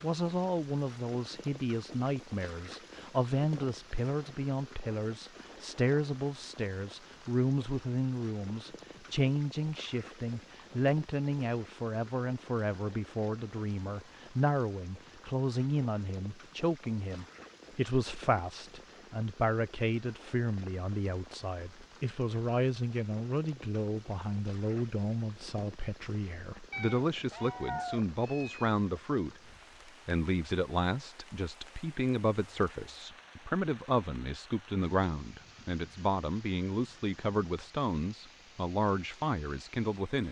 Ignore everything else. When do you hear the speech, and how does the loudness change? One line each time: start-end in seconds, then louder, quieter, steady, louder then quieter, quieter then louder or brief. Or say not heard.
0.0-29.4 steady
30.1-40.2 steady.